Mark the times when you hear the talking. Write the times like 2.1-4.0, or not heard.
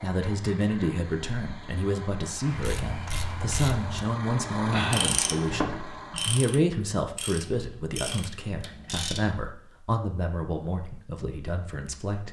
0.0-12.2.